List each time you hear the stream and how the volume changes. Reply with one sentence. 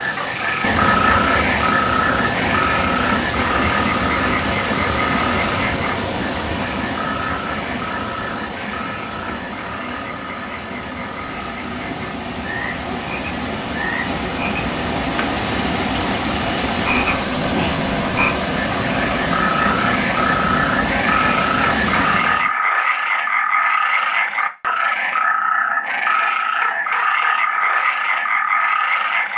The stream can be heard from 0.0 to 22.5 s, getting quieter then louder.